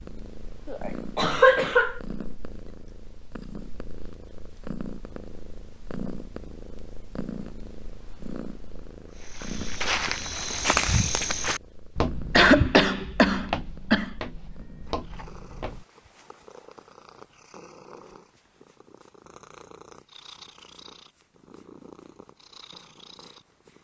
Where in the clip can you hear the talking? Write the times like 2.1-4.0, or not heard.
not heard.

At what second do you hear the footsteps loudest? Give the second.
11 s.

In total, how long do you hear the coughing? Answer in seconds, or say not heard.
3 s.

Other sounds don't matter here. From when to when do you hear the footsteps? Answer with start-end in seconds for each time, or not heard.
9.2-15.8.